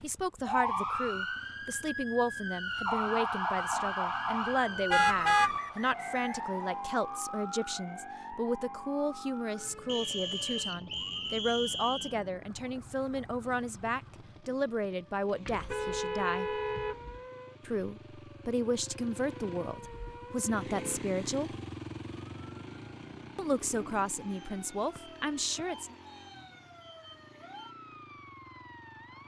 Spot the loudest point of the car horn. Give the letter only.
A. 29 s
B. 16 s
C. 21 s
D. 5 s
D.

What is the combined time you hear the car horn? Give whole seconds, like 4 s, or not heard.
4 s.